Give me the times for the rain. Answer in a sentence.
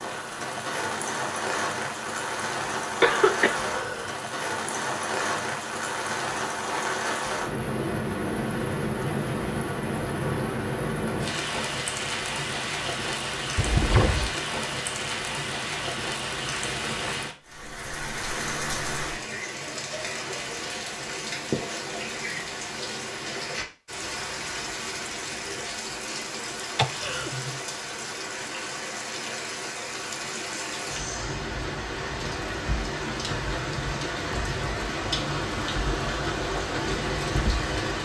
You can hear the rain from 0.0 to 38.0 s.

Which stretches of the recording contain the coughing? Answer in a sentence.
You can hear the coughing from 3.0 to 4.2 s, from 13.6 to 14.3 s and from 26.8 to 27.5 s.